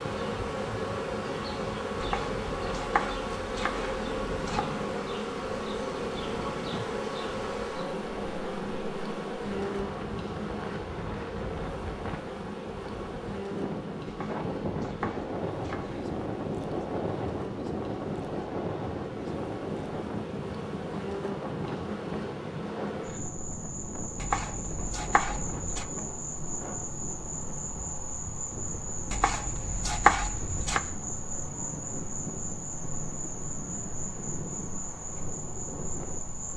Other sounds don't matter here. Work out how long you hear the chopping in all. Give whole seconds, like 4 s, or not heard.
8 s.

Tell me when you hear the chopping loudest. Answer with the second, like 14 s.
30 s.